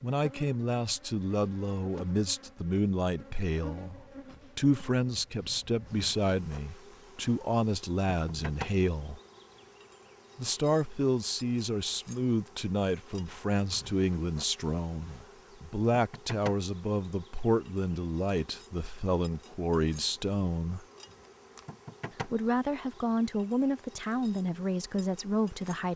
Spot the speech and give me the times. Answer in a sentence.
The speech can be heard from 0.0 to 9.2 s, from 10.3 to 20.9 s and from 22.2 to 25.9 s.